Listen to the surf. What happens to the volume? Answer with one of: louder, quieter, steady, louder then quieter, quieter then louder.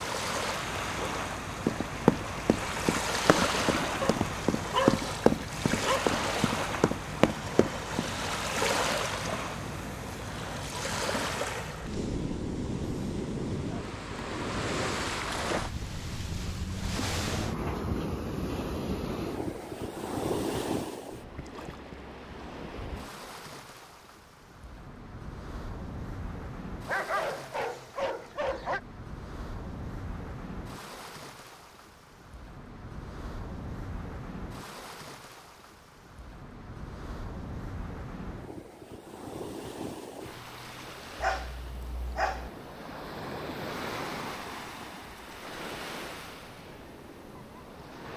quieter.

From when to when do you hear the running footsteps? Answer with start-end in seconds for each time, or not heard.
1.6-8.1.